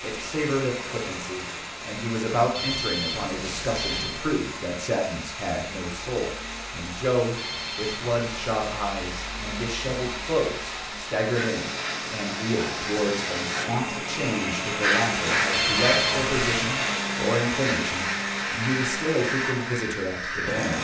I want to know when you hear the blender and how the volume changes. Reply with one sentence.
You can hear the blender from 0.0 to 20.7 s, getting louder.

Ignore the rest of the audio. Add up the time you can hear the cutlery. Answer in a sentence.
You can't hear the cutlery here.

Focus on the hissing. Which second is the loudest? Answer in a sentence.
The loudest moment of the hissing is at 15 seconds.